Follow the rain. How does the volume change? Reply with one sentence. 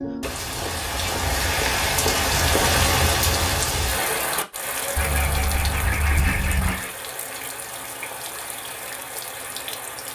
The volume of the rain goes down.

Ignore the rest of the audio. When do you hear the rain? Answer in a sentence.
You can hear the rain from 0.0 to 10.0 s.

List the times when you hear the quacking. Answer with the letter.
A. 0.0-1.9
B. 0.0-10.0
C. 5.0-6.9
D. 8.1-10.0
C.